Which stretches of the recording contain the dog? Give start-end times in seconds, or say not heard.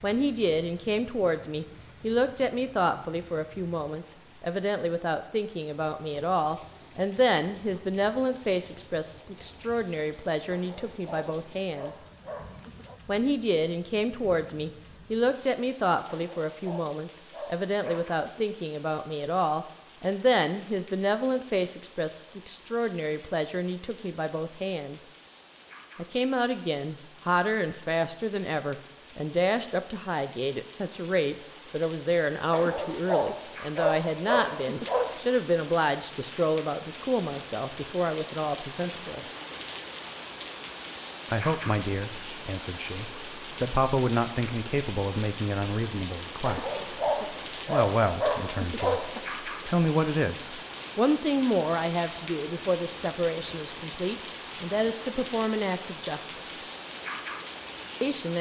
10.5-13.0, 16.1-18.4, 32.5-35.2, 46.5-49.3.